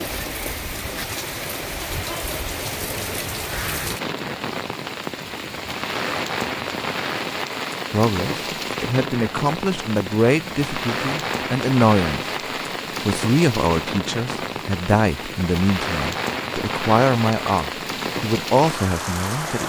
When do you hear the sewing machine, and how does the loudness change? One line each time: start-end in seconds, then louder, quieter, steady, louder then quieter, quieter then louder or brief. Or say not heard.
not heard.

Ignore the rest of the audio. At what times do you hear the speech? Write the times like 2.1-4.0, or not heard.
7.9-12.2, 13.0-19.6.